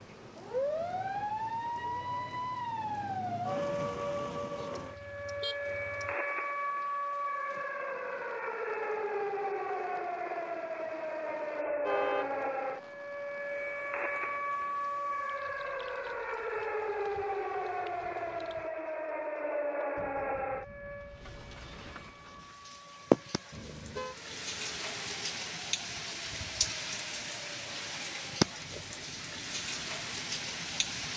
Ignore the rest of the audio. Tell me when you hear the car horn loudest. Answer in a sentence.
The volume of the car horn peaks at 12 seconds.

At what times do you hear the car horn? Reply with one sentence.
You can hear the car horn from 4.8 to 6.2 s, from 11.6 to 12.3 s and from 23.5 to 24.1 s.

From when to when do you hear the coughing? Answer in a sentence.
You can't hear the coughing here.